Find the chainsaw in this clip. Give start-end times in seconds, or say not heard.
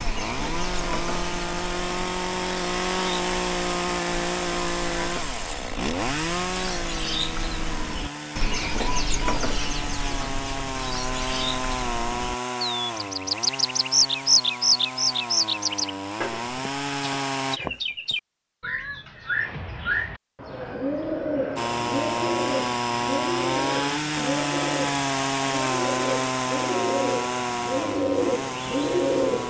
0.0-17.6, 21.6-29.4.